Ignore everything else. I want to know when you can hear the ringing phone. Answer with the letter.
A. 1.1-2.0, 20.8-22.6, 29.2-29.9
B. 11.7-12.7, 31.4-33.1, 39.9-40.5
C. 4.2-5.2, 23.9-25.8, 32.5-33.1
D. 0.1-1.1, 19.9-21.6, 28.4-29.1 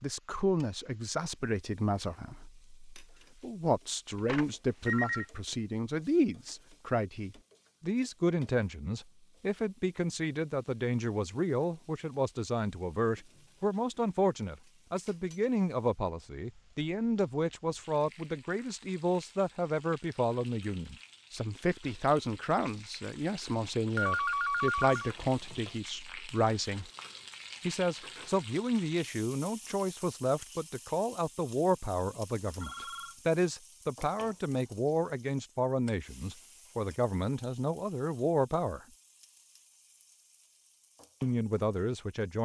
C.